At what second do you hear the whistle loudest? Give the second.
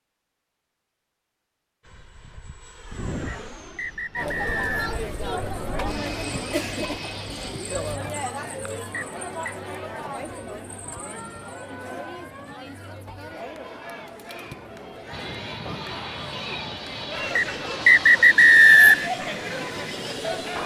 19 s.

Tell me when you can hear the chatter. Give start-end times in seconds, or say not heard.
4.2-20.6.